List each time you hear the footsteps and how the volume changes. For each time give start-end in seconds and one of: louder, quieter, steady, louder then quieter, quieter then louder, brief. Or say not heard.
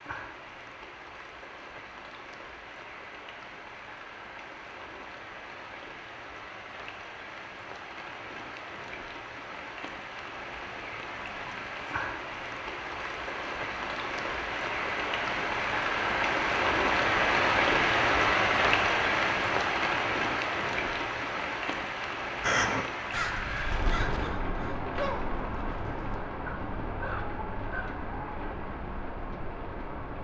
not heard.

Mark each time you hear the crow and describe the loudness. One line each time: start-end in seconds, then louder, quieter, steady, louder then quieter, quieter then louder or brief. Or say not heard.
22.4-27.9 quieter then louder.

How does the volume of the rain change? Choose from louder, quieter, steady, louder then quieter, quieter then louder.
louder then quieter.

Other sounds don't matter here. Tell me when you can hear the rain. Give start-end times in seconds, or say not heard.
0.0-30.1.